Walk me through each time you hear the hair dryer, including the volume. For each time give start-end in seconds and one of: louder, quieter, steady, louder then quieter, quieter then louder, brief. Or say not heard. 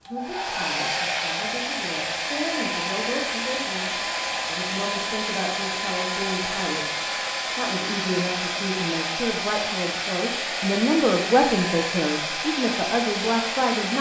0.1-13.9 steady.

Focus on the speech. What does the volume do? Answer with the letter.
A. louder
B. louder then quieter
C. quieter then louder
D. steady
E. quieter
A.